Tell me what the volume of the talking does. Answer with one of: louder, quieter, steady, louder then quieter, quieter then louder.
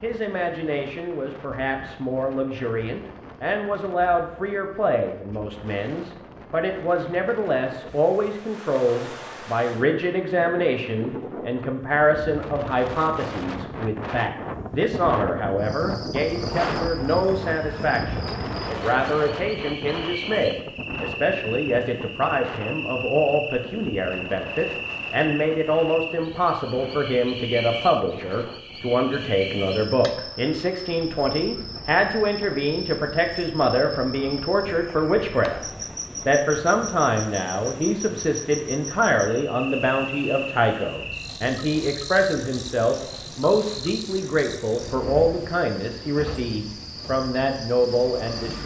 steady.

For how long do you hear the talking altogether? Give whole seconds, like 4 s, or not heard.
48 s.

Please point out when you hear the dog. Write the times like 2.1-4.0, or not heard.
not heard.